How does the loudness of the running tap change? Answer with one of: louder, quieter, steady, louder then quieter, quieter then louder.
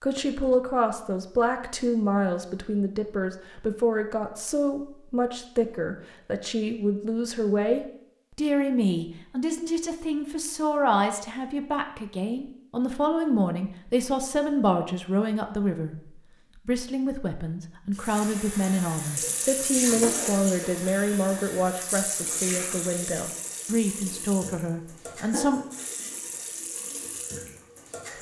quieter.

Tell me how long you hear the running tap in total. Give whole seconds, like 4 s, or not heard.
10 s.